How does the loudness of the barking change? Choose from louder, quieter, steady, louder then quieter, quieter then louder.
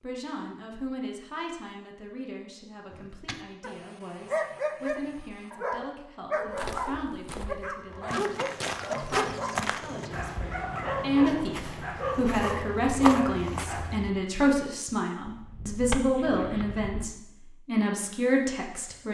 steady.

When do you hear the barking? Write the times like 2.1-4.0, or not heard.
2.9-14.0.